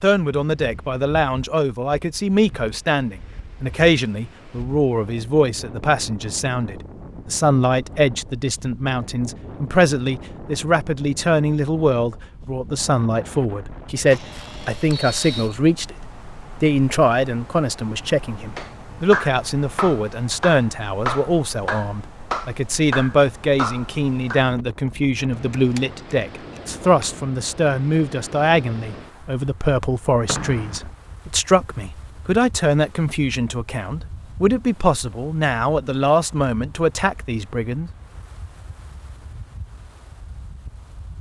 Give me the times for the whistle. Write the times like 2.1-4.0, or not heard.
14.9-15.6, 30.2-30.9.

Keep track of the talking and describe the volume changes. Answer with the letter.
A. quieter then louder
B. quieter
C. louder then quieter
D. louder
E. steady
E.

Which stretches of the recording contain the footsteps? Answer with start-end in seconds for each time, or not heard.
not heard.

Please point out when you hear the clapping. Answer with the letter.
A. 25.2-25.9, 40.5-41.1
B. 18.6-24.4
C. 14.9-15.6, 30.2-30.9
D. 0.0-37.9
B.